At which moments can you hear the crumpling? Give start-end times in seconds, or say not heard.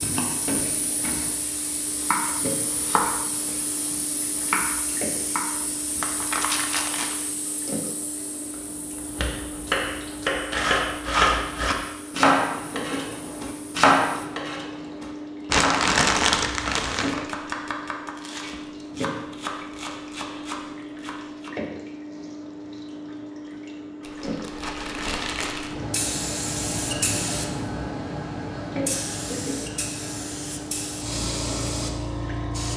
6.0-7.2, 15.4-17.2, 24.0-25.8.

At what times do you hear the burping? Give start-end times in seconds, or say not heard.
not heard.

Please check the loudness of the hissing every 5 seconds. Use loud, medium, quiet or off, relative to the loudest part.
medium, medium, quiet, off, off, loud, loud.